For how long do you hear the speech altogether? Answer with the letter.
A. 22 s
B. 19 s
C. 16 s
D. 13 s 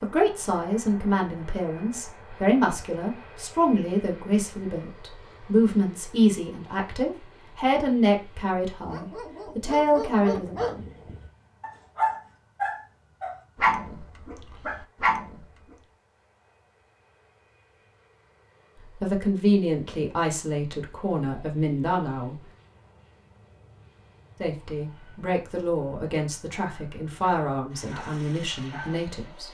B.